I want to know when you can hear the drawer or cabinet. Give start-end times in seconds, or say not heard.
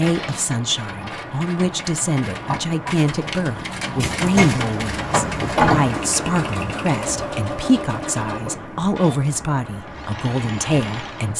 4.0-4.7.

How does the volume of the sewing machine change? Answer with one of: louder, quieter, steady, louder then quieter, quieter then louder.
louder then quieter.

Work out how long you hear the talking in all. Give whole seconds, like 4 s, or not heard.
11 s.